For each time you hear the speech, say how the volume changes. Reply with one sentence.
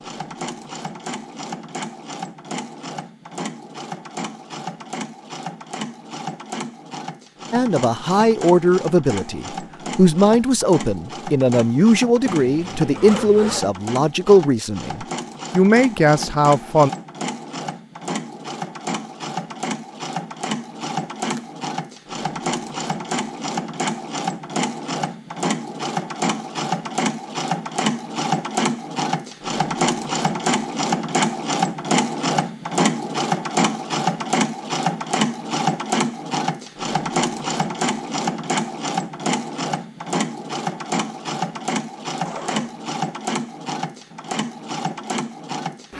You can hear the speech from 7.5 to 16.9 s, at a steady volume.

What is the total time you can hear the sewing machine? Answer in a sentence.
You can hear the sewing machine for 46 seconds altogether.